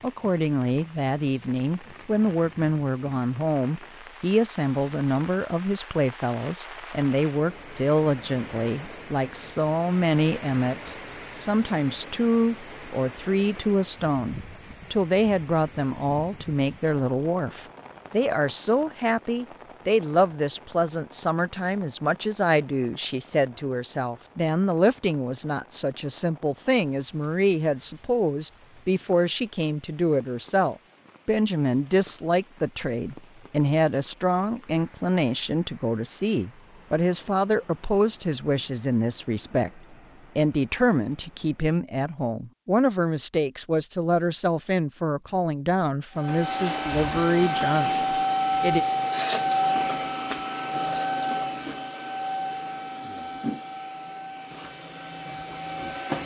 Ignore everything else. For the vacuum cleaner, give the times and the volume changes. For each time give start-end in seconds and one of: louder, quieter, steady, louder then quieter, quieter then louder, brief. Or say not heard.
46.1-56.2 quieter.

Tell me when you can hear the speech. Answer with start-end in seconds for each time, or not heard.
0.0-48.9.